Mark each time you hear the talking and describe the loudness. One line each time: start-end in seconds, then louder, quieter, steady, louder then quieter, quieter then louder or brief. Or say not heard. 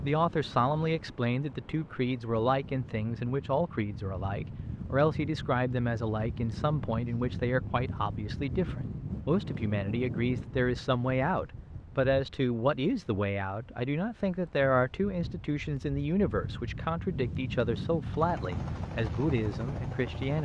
0.0-20.4 steady.